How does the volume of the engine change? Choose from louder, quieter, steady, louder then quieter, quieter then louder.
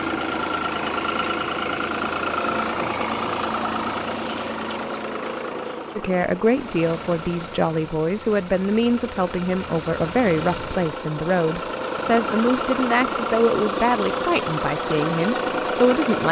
quieter then louder.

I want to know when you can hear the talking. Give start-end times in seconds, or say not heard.
6.0-16.2.